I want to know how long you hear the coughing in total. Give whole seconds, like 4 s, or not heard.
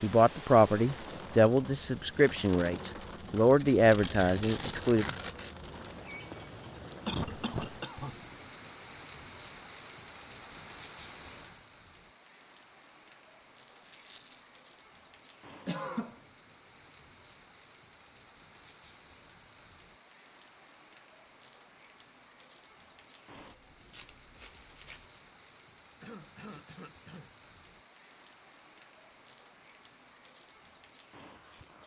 3 s.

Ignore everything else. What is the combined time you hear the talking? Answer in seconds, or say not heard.
5 s.